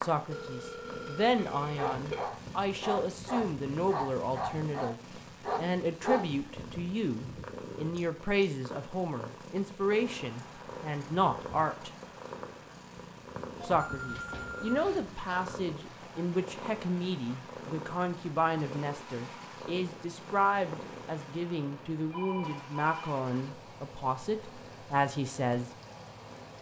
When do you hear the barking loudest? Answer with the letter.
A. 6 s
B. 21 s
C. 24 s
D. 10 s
A.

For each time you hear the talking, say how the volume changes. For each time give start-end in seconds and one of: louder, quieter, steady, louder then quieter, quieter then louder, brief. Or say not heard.
0.0-11.9 steady
13.6-25.7 steady.